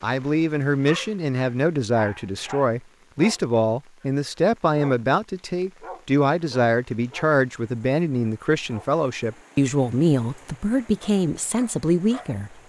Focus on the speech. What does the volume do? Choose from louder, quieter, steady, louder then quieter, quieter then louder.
steady.